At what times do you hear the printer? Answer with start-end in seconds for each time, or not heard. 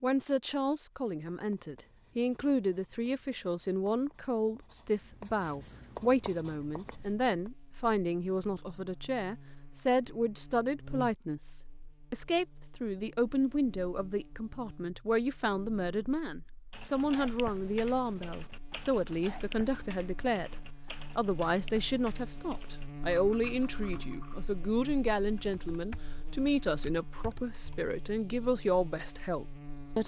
not heard.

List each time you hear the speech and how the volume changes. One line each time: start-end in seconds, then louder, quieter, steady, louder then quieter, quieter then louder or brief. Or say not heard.
0.0-20.6 steady
21.1-30.0 steady.